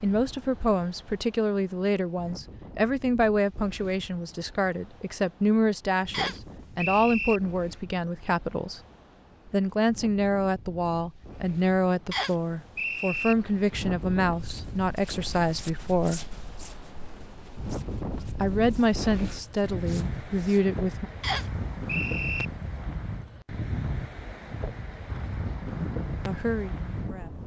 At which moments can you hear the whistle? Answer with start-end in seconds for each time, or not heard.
6.1-7.4, 12.1-13.3, 21.2-22.4.